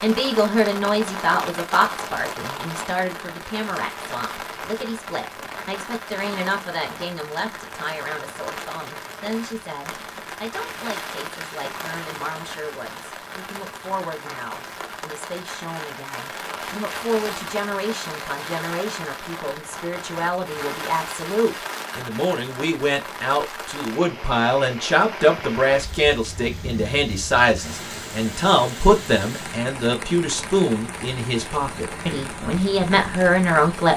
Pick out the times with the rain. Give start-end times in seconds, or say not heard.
0.0-33.9.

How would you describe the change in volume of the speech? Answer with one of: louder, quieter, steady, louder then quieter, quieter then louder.
quieter then louder.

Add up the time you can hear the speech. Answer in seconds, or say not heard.
34 s.